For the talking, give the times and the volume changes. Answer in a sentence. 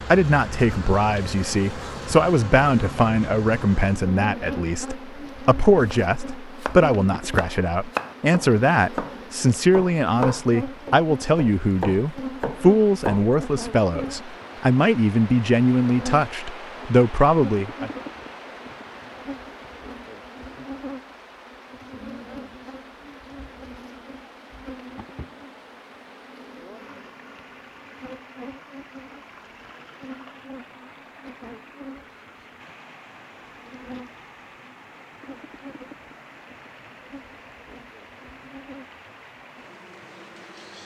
The talking can be heard from 0.1 to 17.9 s, at a steady volume.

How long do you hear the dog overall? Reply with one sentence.
The dog can't be heard in this clip.